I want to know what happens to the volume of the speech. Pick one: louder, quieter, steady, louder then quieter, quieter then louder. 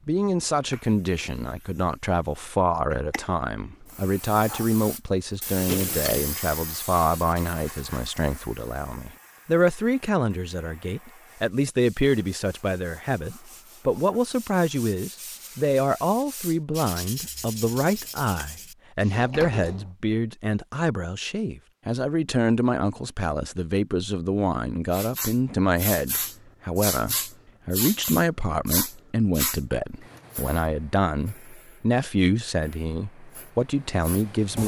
steady.